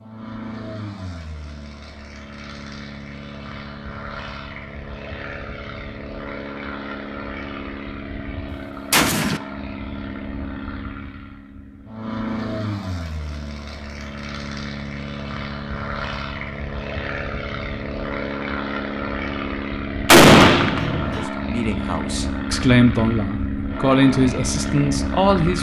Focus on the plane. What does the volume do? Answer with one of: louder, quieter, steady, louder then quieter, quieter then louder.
louder.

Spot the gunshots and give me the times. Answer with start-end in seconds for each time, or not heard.
8.9-9.4, 20.1-21.2.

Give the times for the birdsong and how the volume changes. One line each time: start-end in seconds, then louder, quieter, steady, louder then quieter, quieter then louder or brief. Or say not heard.
not heard.